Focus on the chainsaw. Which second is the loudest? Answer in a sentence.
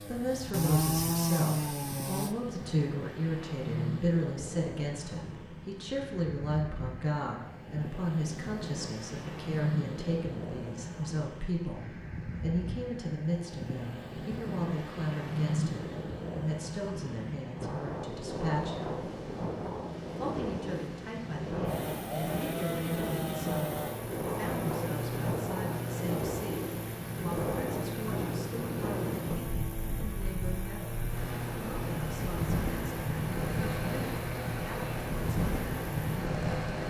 The loudest moment of the chainsaw is at 1 second.